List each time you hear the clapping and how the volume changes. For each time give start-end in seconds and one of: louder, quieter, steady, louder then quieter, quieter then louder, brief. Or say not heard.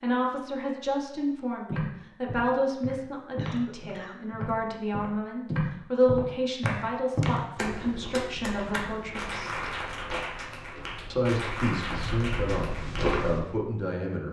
6.7-13.2 steady.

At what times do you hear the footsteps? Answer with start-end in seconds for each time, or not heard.
1.6-13.4.